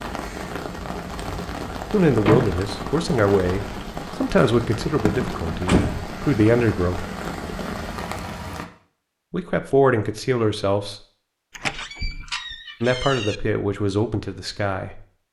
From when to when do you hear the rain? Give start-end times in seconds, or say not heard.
0.0-8.7.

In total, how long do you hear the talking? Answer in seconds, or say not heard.
9 s.